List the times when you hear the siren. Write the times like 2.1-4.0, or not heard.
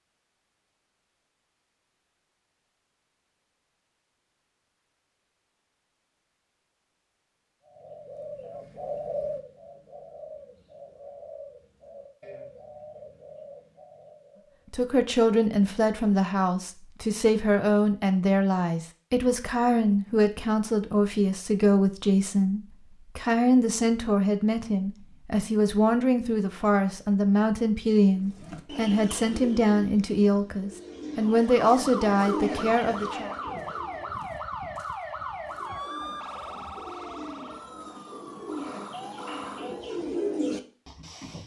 31.2-40.0.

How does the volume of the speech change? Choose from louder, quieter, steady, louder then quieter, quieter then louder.
steady.